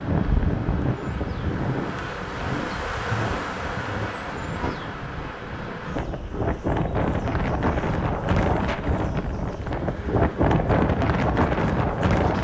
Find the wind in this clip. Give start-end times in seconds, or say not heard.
0.0-12.3.